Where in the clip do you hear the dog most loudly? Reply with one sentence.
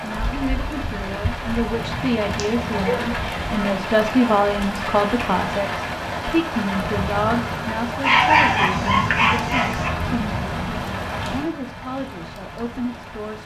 The loudest moment of the dog is at 8 seconds.